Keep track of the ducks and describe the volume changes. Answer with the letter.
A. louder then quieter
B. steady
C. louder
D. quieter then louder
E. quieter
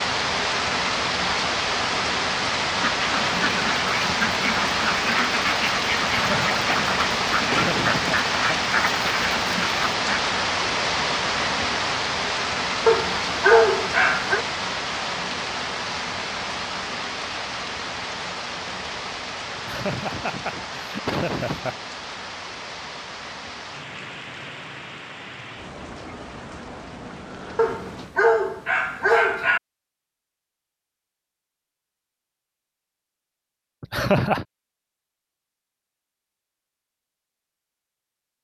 B.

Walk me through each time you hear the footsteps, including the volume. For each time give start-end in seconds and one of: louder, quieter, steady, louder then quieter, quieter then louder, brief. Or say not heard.
not heard.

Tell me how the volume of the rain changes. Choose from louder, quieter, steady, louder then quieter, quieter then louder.
quieter.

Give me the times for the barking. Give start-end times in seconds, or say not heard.
12.8-14.4, 27.6-29.6.